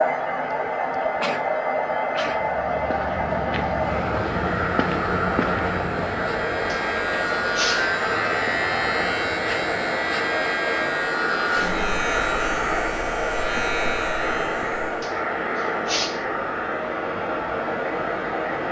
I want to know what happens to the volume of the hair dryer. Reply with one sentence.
The loudness of the hair dryer stays about the same.